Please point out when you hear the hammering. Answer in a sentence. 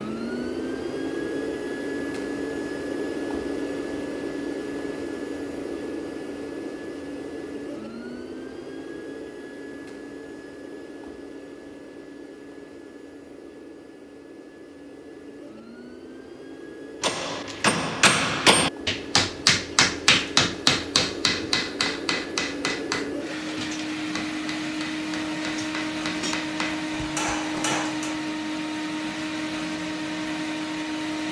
You can hear the hammering from 17.0 to 28.2 s.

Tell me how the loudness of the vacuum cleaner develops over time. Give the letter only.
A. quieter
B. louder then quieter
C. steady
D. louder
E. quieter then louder
E.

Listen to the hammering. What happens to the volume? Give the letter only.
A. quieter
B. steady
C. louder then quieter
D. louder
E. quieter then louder
E.